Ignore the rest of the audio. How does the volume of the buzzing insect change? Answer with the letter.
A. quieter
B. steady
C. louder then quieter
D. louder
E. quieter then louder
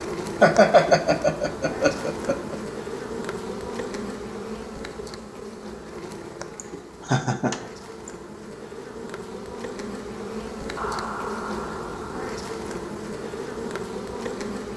E.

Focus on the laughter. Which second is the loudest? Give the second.
1 s.